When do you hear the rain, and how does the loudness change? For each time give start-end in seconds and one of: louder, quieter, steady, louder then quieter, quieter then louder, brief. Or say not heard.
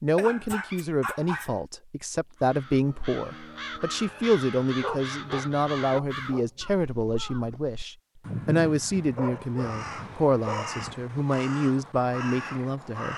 not heard.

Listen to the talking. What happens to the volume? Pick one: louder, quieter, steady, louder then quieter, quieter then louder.
steady.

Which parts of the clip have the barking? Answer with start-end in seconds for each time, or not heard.
0.1-1.5, 4.8-6.5, 8.9-11.1.